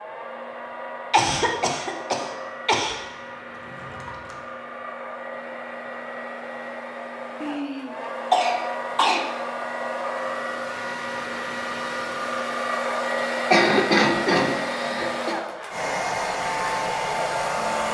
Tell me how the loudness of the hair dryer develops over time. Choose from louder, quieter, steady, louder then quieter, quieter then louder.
louder.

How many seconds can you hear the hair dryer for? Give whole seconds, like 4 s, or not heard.
18 s.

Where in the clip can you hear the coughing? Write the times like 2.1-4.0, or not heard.
1.1-3.0, 7.4-9.2, 13.5-15.3.